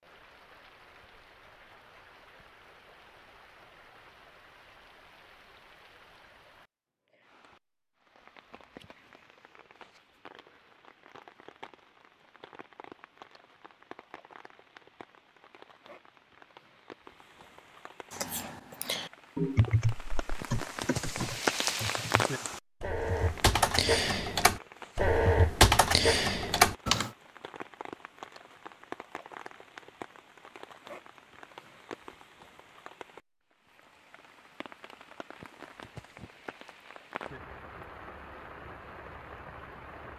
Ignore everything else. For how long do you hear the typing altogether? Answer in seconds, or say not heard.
9 s.